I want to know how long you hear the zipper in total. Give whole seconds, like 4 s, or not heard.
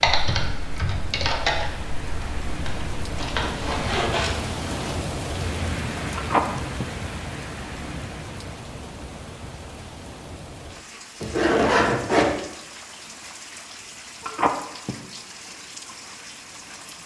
3 s.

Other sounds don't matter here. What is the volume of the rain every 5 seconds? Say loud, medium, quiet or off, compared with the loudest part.
loud, loud, medium, medium.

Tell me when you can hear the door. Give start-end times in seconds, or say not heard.
not heard.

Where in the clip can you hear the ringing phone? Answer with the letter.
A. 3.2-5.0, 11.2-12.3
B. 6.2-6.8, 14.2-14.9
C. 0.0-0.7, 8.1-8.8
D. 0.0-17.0
B.